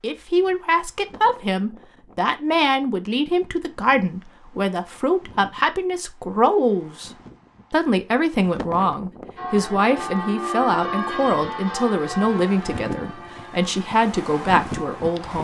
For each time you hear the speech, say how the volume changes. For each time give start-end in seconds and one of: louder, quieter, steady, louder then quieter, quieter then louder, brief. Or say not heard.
0.0-7.1 steady
7.7-15.3 steady.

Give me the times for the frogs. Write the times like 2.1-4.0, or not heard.
not heard.